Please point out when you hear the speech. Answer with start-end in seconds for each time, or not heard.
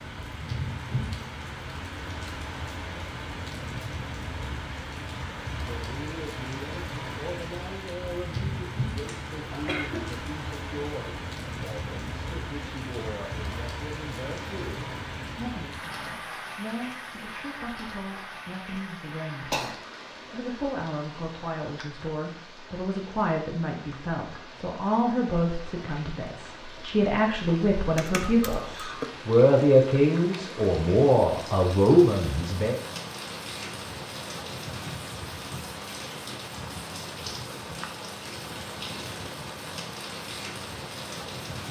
5.7-32.8.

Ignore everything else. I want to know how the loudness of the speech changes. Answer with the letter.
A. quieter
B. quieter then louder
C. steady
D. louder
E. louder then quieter
D.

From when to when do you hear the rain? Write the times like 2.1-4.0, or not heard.
0.0-41.6.